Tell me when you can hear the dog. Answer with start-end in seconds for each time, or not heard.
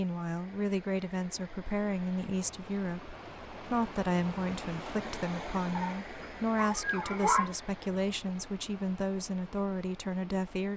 5.8-7.5.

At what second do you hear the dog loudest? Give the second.
7 s.